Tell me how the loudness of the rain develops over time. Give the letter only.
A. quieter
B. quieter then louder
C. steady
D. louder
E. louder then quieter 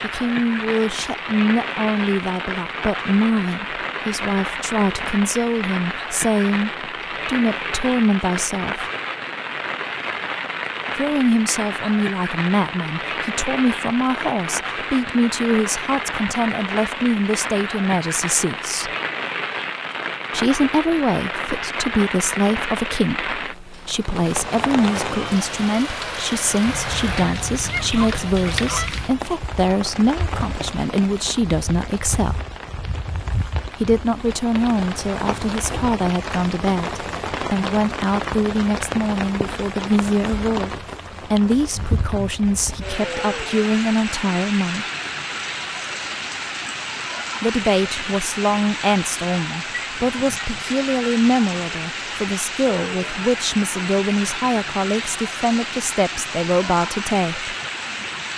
C.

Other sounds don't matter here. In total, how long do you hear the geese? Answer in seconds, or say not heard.
2 s.